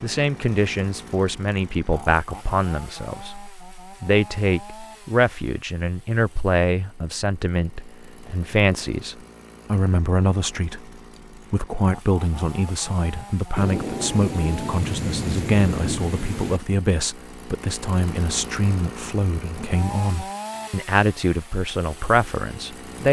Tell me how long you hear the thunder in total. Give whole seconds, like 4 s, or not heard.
3 s.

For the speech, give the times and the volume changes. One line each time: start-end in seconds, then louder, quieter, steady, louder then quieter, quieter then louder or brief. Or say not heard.
0.0-23.0 steady.